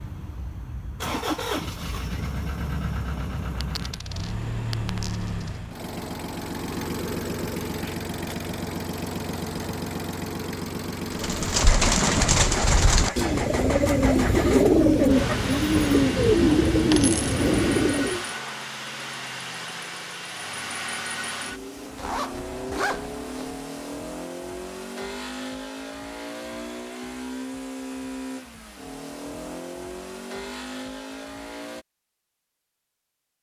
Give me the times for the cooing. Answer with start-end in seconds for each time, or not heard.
11.1-18.2.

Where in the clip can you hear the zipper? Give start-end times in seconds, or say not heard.
21.9-23.6.